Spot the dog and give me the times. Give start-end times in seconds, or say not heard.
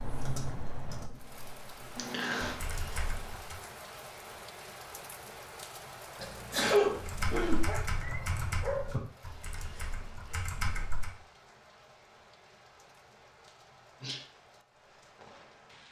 7.7-9.1.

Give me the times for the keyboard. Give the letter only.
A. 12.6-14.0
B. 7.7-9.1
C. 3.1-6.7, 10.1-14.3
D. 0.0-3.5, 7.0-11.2
D.